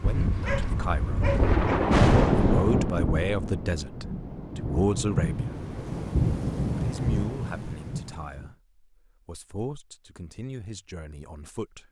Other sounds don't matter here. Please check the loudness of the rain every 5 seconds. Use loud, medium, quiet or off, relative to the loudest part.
loud, loud, off.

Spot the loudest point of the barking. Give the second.
1 s.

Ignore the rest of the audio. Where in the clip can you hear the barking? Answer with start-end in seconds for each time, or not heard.
0.0-1.6.